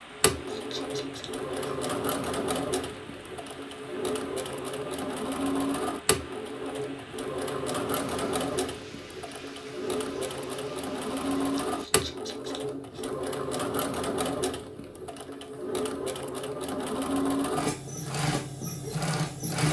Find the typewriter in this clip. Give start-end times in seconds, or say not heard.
not heard.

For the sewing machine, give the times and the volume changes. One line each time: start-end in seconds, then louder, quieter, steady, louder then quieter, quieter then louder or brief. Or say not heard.
0.1-19.6 steady.